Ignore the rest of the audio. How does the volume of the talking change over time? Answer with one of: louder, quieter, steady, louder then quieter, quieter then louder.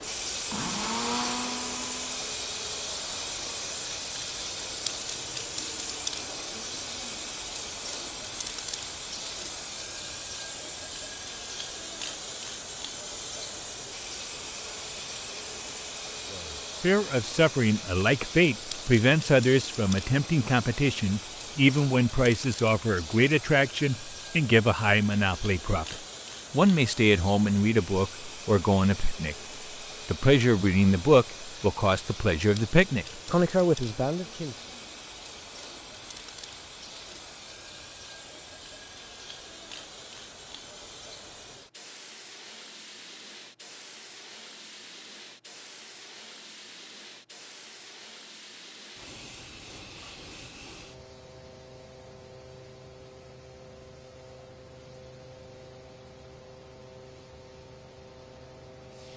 steady.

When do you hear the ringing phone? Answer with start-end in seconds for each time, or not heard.
not heard.